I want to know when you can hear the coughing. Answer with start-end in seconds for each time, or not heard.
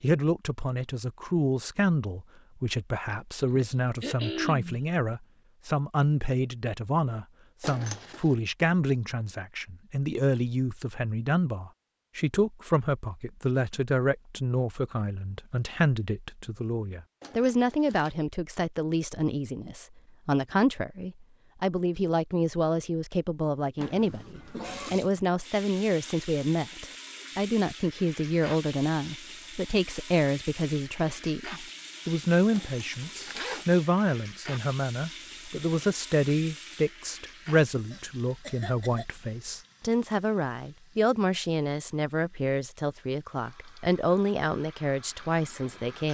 3.4-4.8, 23.8-24.9, 37.9-39.0.